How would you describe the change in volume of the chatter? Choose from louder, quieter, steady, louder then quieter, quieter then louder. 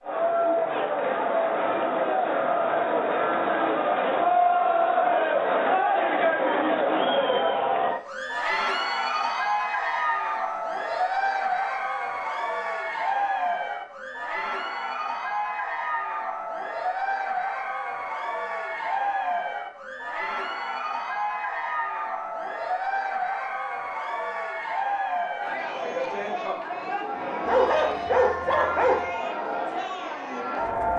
quieter.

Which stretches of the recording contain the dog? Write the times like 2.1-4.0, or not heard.
27.4-29.1.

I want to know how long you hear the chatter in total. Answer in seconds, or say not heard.
31 s.